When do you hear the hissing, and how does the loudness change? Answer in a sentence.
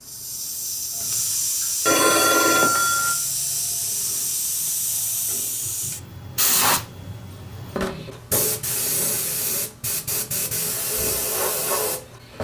The hissing can be heard from 0.0 to 12.3 s, at a steady volume.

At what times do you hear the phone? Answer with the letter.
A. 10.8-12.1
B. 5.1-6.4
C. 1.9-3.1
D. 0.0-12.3
C.